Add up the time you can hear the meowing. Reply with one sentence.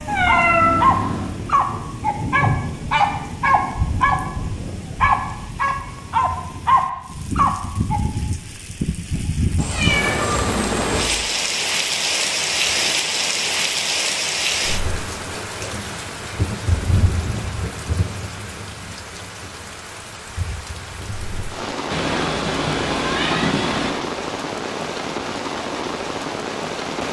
You can hear the meowing for 5 seconds altogether.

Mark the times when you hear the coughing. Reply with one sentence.
The coughing can't be heard in this clip.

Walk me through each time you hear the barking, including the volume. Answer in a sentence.
The barking can be heard from 0.2 to 8.0 s, at a steady volume.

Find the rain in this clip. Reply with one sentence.
The rain can be heard from 0.0 to 27.0 s.